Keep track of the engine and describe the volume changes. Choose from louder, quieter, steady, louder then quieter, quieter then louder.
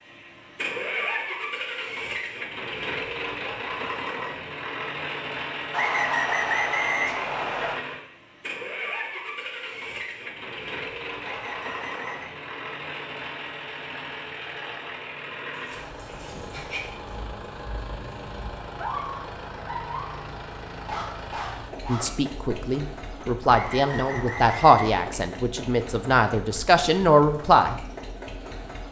quieter.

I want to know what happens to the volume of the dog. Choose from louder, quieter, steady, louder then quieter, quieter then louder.
quieter then louder.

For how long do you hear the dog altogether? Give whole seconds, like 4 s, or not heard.
7 s.